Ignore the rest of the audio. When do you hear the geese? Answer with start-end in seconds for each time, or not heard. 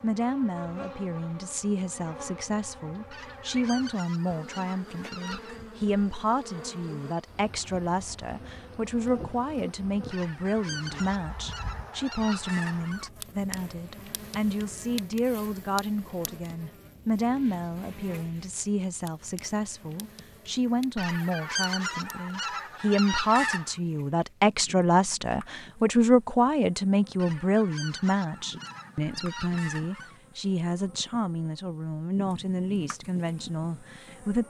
3.1-5.6, 10.1-13.1, 20.9-23.8, 27.1-30.2.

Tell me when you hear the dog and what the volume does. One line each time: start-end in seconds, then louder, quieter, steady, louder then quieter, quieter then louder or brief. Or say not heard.
not heard.